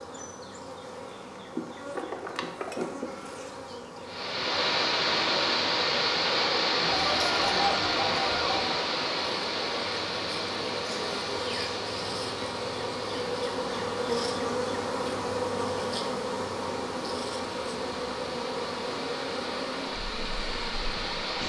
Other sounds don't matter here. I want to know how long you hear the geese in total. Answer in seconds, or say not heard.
2 s.